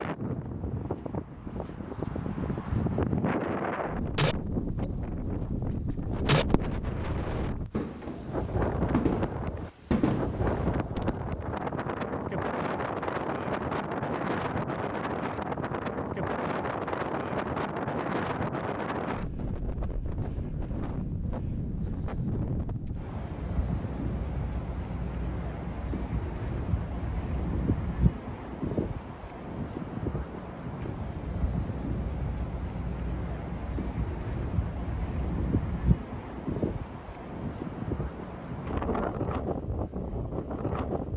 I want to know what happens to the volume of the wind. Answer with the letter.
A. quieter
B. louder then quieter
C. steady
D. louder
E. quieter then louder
C.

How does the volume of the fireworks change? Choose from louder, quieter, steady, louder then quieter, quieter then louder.
quieter then louder.